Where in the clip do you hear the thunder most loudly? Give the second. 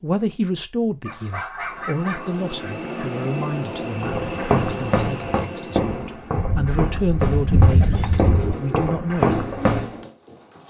8 s.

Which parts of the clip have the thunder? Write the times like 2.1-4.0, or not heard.
6.3-8.6.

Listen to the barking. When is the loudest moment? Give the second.
2 s.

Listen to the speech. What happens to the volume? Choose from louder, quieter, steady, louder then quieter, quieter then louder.
quieter then louder.